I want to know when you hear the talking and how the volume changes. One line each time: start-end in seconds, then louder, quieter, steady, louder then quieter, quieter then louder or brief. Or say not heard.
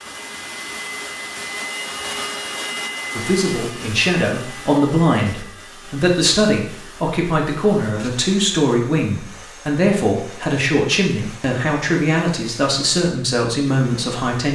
3.1-14.4 steady.